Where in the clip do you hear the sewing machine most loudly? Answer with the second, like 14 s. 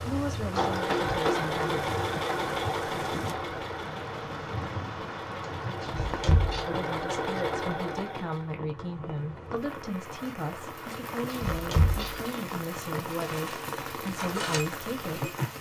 1 s.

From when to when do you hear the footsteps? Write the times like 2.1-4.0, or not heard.
not heard.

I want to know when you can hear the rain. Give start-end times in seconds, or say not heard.
0.0-15.5.